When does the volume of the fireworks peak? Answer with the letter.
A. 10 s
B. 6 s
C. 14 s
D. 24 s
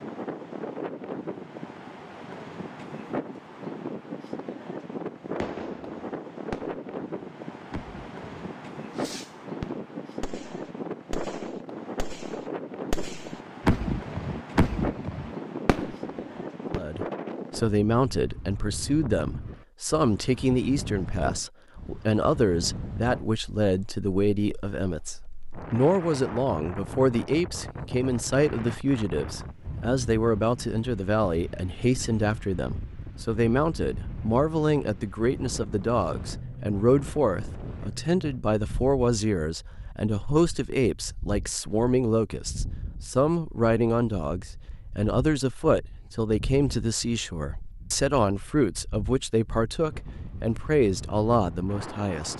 C.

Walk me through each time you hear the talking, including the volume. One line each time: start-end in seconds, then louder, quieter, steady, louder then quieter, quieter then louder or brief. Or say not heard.
16.7-52.3 steady.